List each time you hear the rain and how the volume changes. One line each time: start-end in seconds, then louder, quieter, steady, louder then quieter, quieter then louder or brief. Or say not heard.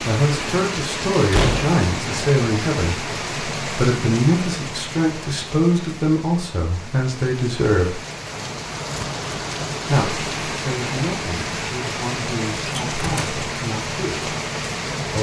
0.0-15.1 quieter then louder.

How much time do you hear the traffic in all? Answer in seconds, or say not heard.
not heard.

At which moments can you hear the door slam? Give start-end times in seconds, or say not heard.
1.3-1.8, 12.7-13.3.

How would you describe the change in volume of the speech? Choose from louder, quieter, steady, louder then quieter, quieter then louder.
quieter.